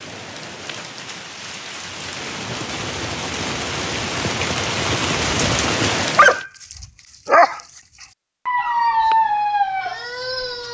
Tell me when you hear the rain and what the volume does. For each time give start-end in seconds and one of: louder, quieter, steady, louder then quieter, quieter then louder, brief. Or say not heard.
0.0-6.5 louder.